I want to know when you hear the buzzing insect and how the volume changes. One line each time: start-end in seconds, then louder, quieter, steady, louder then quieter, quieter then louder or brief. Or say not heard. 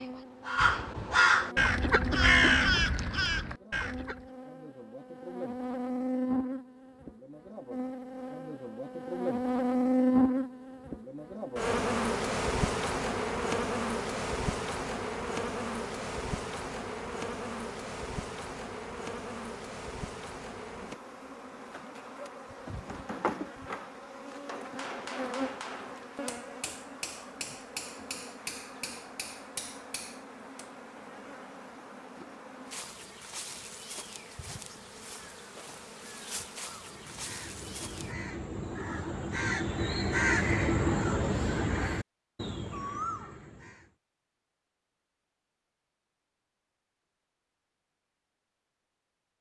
0.0-38.1 louder then quieter.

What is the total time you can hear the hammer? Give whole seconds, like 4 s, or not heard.
8 s.